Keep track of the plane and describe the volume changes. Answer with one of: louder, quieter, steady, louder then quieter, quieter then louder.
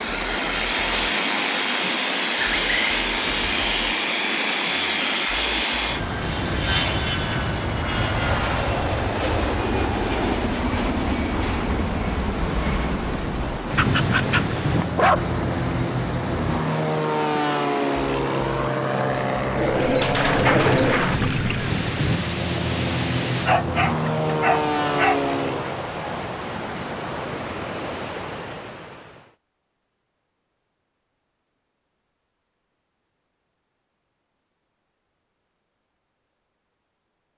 steady.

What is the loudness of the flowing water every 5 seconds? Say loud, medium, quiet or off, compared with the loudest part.
loud, loud, loud, loud, loud, loud, off, off.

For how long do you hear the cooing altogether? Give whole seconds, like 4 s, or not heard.
3 s.